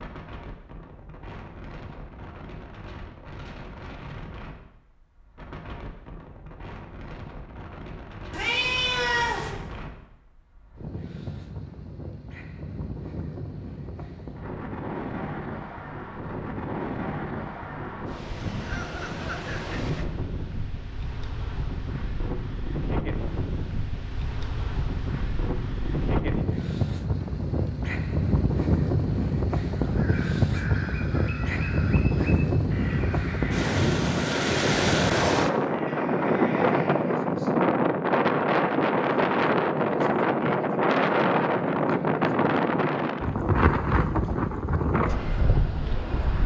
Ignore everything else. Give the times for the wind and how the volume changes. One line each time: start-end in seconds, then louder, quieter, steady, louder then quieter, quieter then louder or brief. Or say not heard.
0.0-46.4 louder.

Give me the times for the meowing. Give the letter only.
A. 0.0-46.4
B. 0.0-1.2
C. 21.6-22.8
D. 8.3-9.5
D.